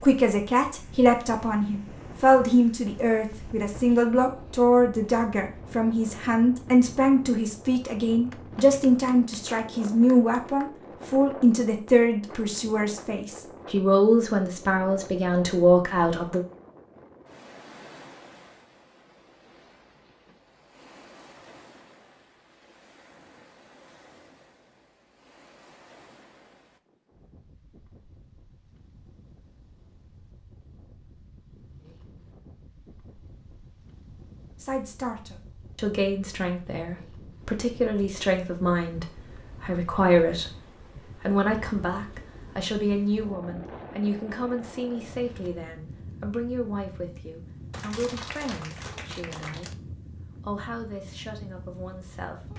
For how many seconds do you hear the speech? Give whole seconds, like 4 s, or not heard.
33 s.